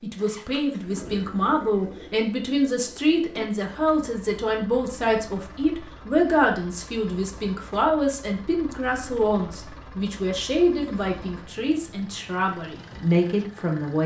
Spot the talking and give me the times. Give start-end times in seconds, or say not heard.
0.0-14.0.